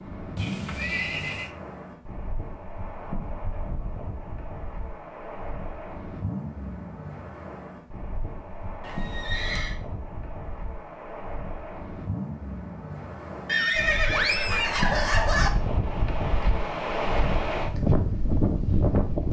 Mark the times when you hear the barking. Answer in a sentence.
The barking can't be heard in this clip.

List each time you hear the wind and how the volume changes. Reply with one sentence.
You can hear the wind from 0.0 to 19.2 s, getting louder.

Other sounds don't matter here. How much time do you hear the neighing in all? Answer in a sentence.
You can hear the neighing for 4 seconds altogether.